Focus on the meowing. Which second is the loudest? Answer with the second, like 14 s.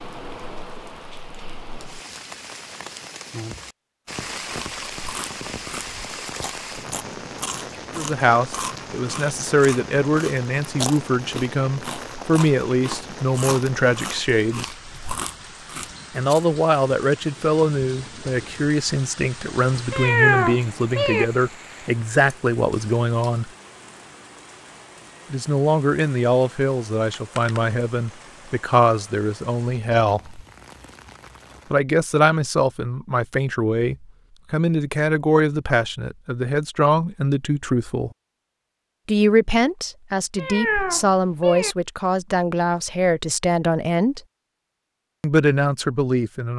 20 s.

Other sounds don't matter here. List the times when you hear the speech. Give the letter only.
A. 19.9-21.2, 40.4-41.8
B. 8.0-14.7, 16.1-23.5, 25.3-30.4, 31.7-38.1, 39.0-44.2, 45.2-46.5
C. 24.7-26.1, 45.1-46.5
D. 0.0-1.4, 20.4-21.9
B.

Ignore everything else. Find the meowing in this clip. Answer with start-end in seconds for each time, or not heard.
19.9-21.2, 40.4-41.8.